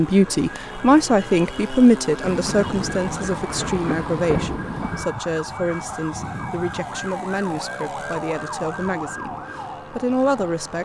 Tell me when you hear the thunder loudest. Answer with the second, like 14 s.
4 s.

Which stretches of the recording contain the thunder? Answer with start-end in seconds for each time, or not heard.
2.2-5.0.